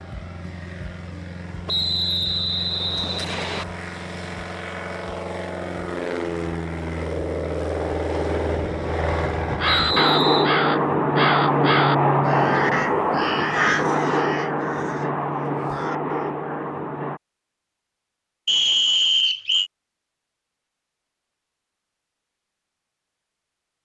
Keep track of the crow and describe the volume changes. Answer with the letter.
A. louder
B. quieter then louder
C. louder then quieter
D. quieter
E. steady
D.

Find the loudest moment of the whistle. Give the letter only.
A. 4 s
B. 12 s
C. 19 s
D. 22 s
C.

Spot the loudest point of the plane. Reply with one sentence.
The loudest moment of the plane is at 12 seconds.